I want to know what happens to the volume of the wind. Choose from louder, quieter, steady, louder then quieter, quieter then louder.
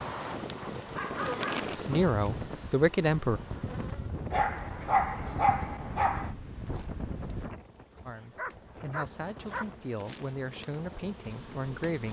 quieter.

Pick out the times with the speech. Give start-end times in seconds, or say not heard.
1.9-3.4, 8.1-12.0.